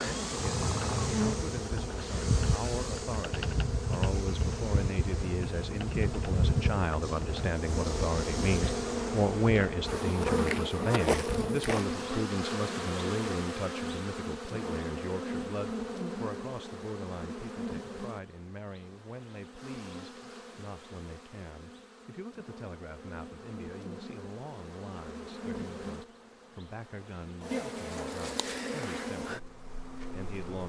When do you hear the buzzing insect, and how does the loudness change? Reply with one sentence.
The buzzing insect can be heard from 0.0 to 30.6 s, getting quieter then louder.